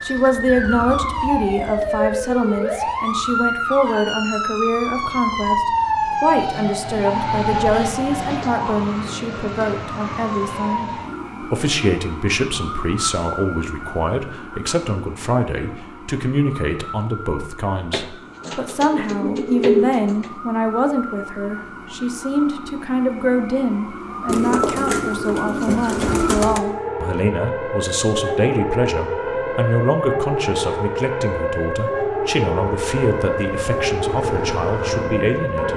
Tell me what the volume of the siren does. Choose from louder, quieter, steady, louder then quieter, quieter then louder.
quieter then louder.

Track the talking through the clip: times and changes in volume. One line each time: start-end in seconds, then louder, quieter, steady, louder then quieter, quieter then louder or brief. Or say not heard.
0.0-35.7 steady.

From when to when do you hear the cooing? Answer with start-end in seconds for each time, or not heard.
8.2-9.7, 17.9-20.4, 24.2-26.6.